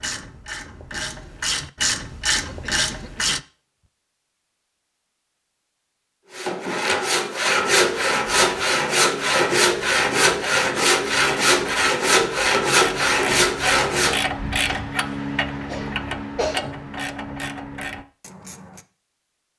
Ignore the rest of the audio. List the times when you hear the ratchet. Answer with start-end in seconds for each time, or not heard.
0.0-3.4, 7.8-18.9.